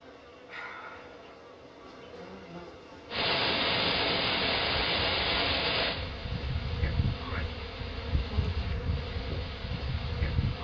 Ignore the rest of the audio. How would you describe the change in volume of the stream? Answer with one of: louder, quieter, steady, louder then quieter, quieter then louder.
quieter.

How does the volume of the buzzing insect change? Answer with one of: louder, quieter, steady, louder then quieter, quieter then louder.
louder.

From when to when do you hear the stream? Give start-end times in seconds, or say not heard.
3.1-10.6.